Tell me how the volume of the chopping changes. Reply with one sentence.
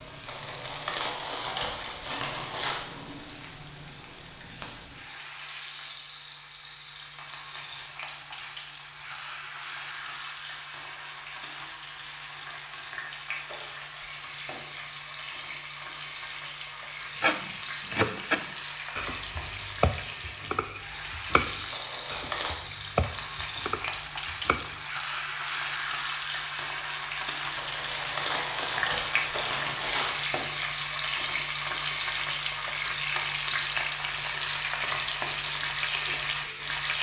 The volume of the chopping goes down.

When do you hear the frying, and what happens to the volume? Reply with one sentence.
The frying can be heard from 0.0 to 36.9 s, getting louder.